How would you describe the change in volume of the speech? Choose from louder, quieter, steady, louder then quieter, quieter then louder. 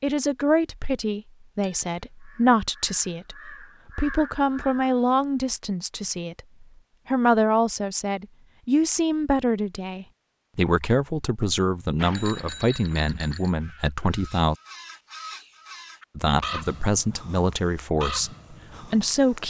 steady.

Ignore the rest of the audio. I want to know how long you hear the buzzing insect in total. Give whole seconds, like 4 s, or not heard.
not heard.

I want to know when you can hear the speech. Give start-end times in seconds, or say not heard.
0.0-14.6, 16.1-19.4.